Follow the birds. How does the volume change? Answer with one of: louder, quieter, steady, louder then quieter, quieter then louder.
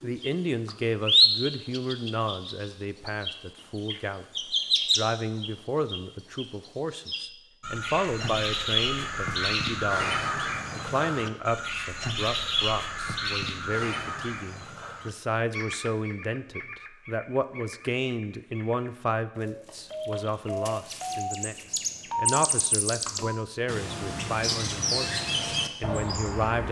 quieter then louder.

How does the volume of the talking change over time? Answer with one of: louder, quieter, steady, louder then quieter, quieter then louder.
steady.